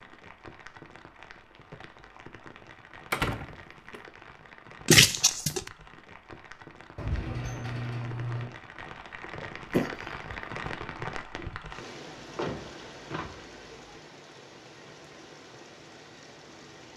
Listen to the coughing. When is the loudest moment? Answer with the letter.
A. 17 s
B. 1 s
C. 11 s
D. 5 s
D.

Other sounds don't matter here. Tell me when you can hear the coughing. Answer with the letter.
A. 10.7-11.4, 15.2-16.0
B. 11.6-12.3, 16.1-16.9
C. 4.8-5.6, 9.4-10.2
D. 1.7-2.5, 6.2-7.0
C.